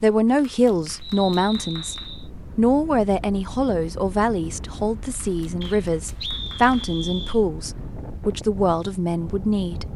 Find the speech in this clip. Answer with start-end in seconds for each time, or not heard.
0.0-9.9.